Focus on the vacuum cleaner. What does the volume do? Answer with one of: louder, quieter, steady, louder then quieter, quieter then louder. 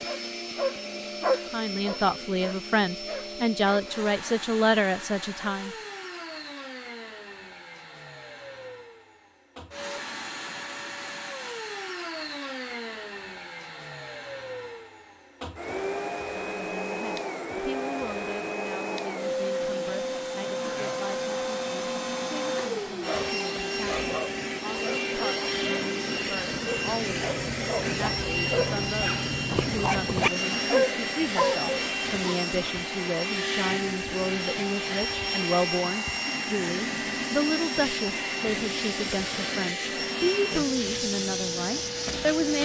louder.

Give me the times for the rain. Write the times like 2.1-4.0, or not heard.
not heard.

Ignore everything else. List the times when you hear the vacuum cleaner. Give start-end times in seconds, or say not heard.
0.0-42.6.